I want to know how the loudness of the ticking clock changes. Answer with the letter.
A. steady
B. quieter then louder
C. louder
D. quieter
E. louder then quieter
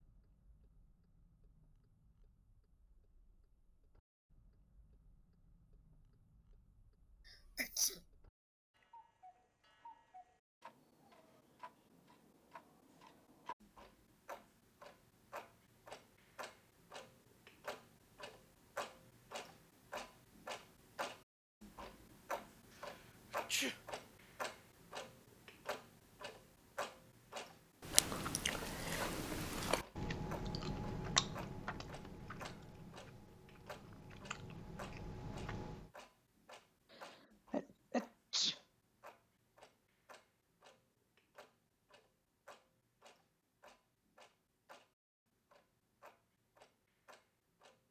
E.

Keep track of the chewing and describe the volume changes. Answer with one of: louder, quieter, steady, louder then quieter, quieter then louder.
quieter then louder.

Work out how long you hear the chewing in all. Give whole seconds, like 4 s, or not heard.
8 s.